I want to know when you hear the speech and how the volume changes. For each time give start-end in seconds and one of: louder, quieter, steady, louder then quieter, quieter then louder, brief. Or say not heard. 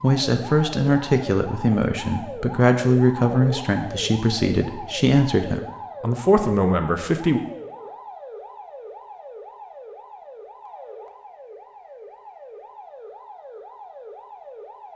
0.0-7.4 steady.